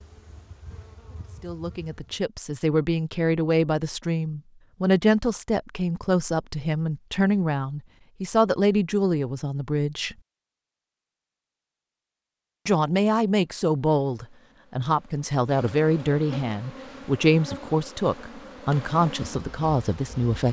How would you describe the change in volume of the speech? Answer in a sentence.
The loudness of the speech stays about the same.